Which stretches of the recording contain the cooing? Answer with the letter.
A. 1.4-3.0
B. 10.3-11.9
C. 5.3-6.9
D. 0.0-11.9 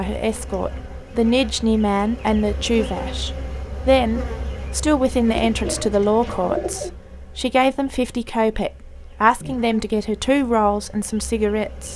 C.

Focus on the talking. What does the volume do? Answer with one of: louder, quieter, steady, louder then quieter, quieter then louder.
steady.